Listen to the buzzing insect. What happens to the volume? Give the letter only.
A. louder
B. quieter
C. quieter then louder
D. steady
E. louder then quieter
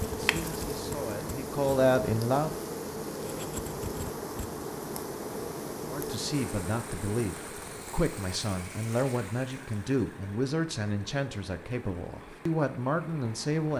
B.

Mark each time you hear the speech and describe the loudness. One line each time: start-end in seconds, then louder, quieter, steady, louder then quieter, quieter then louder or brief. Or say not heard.
0.2-2.5 brief
5.8-13.7 steady.